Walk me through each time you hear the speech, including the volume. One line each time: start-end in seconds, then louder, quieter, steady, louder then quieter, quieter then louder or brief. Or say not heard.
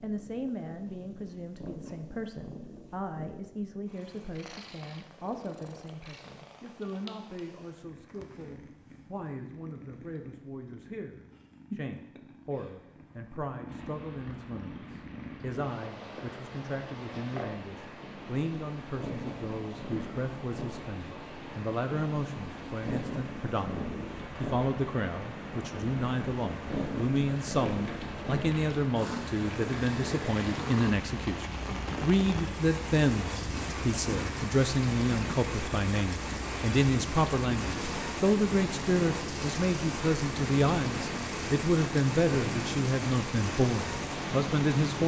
0.0-45.0 louder.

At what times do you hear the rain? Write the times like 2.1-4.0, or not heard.
13.7-45.0.